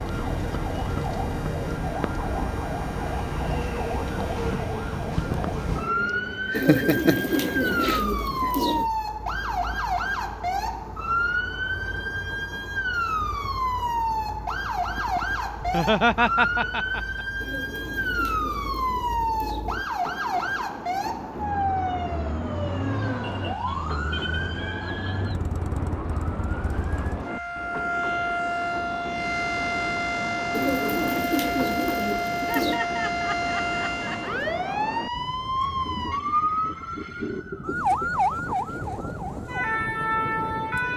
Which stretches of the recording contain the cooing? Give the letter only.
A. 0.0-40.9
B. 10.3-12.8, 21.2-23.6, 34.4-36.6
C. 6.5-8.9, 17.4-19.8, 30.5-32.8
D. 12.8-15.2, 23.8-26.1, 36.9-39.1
C.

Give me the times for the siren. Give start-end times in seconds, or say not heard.
0.0-40.9.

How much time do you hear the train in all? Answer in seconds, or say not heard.
41 s.